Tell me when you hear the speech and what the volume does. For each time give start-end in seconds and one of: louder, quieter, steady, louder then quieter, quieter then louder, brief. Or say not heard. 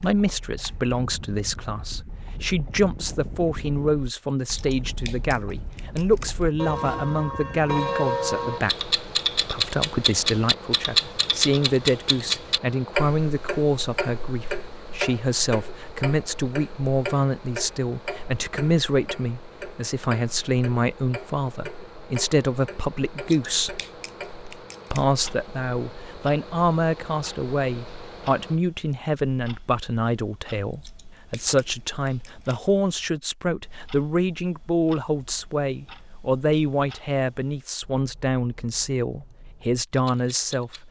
0.0-23.8 steady
24.9-40.8 steady.